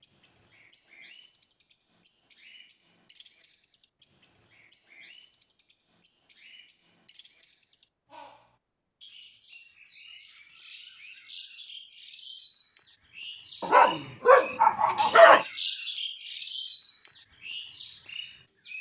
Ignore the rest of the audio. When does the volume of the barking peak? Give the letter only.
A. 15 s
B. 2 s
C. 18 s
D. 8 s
A.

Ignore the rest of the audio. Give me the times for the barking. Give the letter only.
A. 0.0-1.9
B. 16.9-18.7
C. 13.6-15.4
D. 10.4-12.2
C.